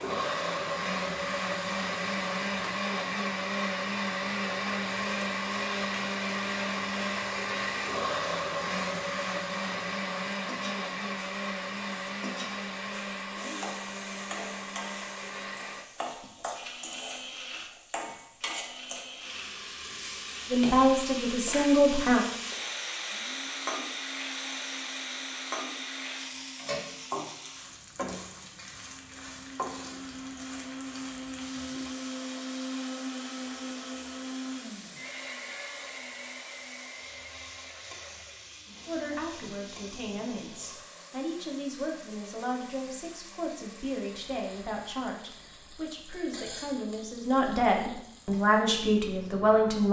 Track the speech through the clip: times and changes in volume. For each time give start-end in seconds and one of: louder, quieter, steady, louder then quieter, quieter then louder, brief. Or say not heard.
20.5-22.2 brief
38.9-49.8 louder.